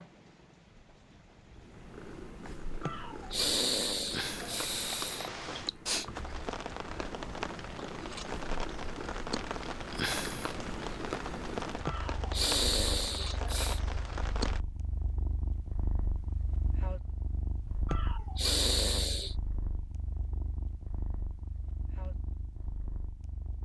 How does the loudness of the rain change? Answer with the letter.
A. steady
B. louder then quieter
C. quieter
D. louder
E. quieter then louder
D.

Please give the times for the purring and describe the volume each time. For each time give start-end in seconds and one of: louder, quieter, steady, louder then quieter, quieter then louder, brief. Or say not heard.
1.6-23.6 quieter.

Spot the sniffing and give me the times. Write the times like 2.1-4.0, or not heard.
2.8-5.3, 11.8-13.8, 17.9-19.4.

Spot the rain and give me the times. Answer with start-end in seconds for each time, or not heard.
0.0-14.6.